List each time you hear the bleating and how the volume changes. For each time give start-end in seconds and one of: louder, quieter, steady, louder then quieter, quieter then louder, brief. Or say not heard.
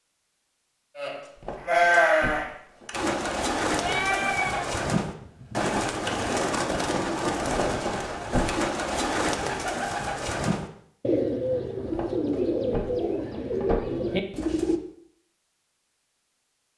0.9-6.3 quieter.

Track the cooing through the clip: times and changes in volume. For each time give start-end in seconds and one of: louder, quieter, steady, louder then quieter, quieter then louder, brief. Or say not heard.
2.9-14.8 steady.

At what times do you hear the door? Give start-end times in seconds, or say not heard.
1.4-2.9, 7.5-8.6, 11.8-14.1.